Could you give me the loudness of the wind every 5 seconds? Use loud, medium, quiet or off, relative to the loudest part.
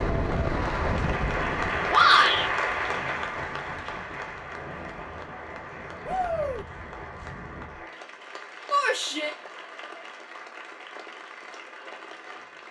loud, medium, off.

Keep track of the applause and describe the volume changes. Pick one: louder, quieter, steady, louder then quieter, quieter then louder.
quieter.